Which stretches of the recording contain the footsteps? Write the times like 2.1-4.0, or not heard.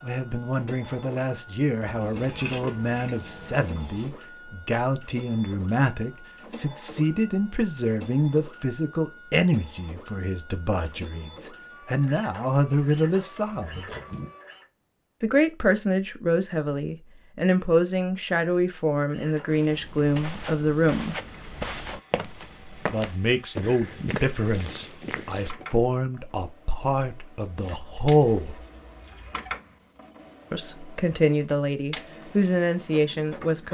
19.5-25.8.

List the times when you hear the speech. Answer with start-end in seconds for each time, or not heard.
0.0-13.9, 15.2-21.1, 22.9-28.6, 30.5-33.6.